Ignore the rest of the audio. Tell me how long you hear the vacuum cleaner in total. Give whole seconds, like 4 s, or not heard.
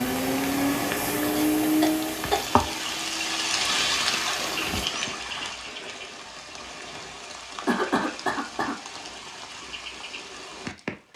5 s.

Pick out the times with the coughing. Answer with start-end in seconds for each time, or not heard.
1.4-2.4, 7.7-8.8.